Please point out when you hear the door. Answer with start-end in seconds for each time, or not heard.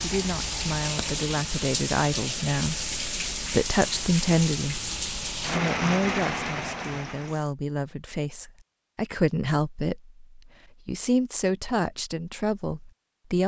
not heard.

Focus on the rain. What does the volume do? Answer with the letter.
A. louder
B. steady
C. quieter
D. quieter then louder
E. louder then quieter
B.